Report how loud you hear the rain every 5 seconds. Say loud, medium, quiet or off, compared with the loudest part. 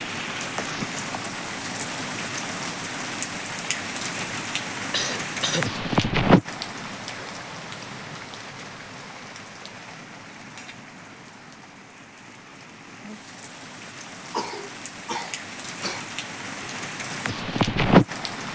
medium, loud, quiet, loud.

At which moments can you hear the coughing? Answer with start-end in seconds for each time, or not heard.
4.9-5.7, 14.3-16.1.